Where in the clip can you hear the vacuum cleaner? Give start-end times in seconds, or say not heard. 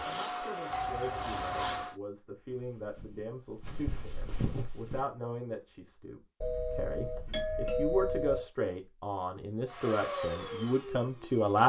0.0-1.9, 9.7-11.6.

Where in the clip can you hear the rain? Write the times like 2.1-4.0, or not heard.
not heard.